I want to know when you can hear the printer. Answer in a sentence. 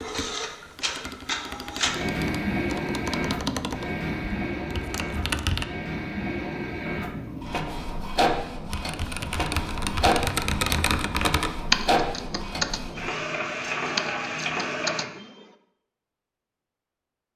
You can hear the printer from 0.0 to 15.1 s.